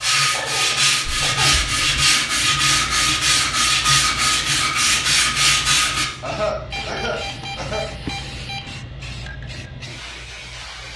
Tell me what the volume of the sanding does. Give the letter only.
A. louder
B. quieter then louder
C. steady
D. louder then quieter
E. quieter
C.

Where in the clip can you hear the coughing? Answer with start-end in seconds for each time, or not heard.
0.3-1.6, 6.2-7.8.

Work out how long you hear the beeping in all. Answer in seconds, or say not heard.
3 s.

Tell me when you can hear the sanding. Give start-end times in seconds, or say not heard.
0.0-6.0.